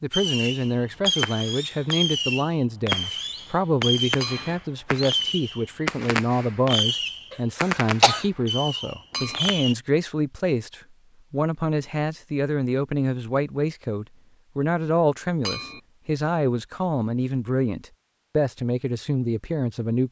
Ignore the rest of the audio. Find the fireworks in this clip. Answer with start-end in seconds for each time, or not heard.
0.1-9.8.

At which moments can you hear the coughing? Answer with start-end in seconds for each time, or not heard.
7.3-8.2.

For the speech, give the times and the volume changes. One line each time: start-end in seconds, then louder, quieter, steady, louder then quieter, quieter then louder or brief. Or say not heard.
0.0-20.0 steady.